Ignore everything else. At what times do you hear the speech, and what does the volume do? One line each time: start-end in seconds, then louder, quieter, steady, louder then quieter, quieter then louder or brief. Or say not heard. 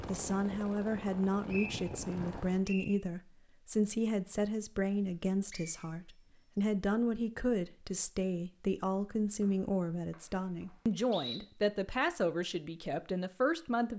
0.1-13.9 steady.